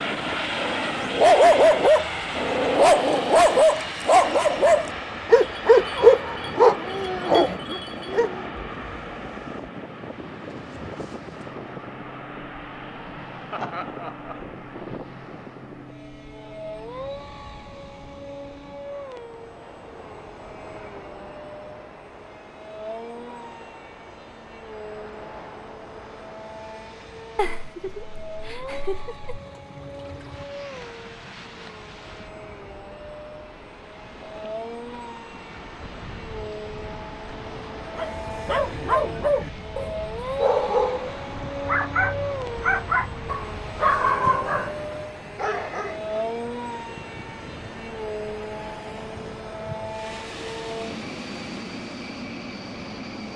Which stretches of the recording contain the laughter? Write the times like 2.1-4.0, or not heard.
13.5-14.4, 27.4-29.3.